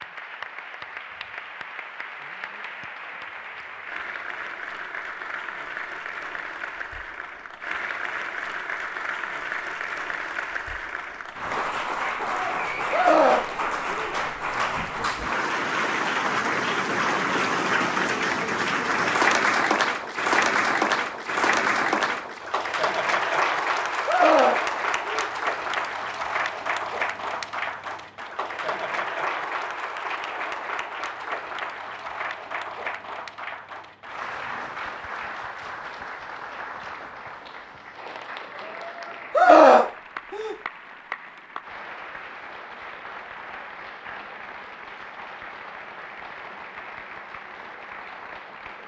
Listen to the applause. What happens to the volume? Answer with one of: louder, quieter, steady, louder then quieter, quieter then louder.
louder then quieter.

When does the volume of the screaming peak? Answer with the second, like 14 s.
40 s.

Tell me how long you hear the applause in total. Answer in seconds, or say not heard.
49 s.